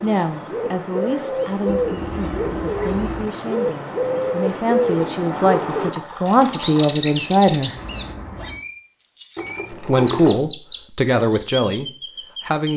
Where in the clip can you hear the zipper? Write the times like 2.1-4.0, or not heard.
2.1-3.3, 7.8-8.6.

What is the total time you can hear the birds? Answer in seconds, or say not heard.
13 s.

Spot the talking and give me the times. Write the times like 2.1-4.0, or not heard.
0.0-7.8, 9.7-12.7.